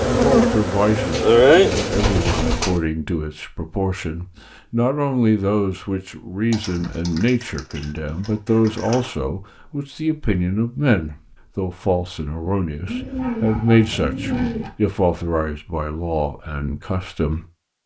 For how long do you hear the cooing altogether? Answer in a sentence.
You can hear the cooing for 6 seconds altogether.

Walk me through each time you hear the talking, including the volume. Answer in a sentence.
You can hear the talking from 0.0 to 17.4 s, at a steady volume.